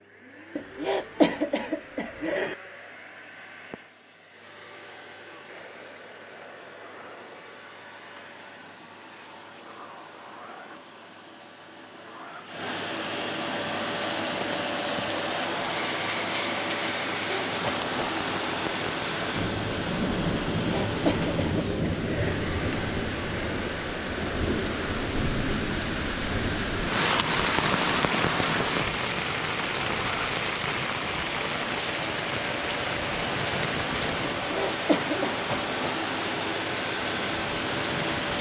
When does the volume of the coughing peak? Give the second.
1 s.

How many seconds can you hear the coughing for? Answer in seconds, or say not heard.
5 s.